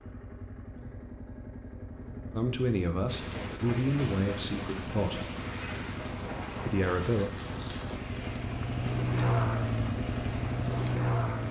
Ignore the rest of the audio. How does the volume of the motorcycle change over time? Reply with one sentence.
The loudness of the motorcycle goes up.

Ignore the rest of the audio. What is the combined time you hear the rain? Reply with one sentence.
The rain can be heard for 8 seconds in total.